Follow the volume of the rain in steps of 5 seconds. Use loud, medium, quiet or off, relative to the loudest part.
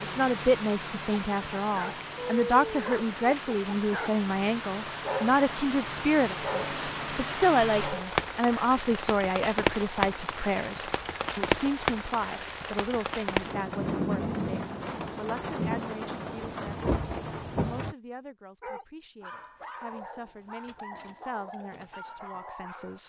medium, loud, loud, loud, off.